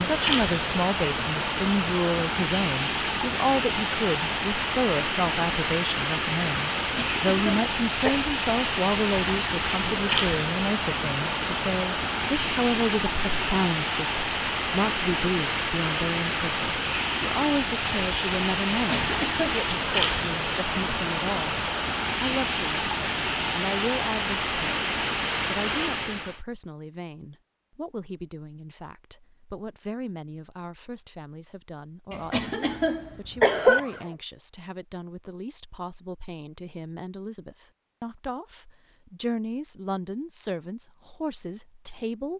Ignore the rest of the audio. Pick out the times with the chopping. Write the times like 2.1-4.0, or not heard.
not heard.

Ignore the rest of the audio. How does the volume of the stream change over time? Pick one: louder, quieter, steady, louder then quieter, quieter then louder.
steady.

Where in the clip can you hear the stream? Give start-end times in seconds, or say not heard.
0.0-26.4.